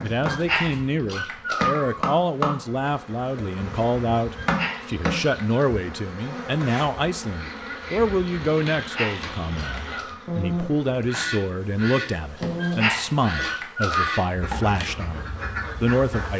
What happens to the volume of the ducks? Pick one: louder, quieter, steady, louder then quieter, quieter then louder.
louder then quieter.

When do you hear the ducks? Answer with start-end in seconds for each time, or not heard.
7.2-16.3.